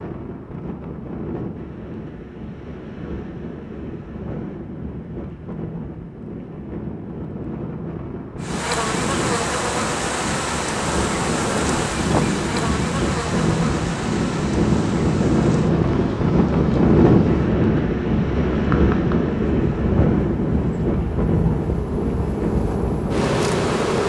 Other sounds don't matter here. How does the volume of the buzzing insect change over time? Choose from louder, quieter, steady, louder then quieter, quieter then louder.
quieter then louder.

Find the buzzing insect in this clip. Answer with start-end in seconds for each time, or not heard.
8.4-24.0.